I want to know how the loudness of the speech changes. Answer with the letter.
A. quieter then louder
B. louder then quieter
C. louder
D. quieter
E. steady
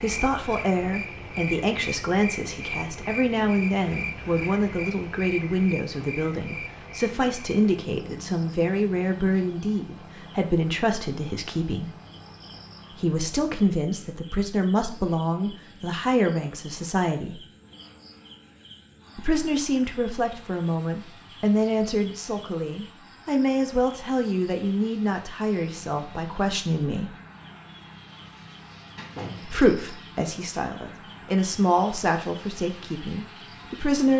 E.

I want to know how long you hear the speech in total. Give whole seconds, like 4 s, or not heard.
29 s.